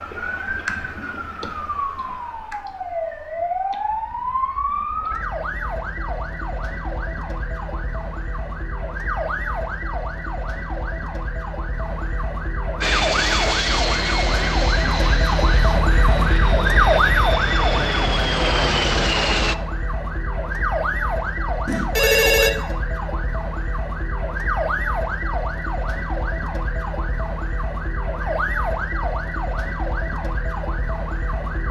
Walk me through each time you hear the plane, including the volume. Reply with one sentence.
The plane can be heard from 12.8 to 19.6 s, getting quieter then louder.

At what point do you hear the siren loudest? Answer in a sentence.
The volume of the siren peaks at 17 seconds.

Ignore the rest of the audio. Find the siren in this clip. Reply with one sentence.
You can hear the siren from 0.0 to 31.6 s.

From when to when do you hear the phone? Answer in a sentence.
The phone can be heard from 21.6 to 22.5 s.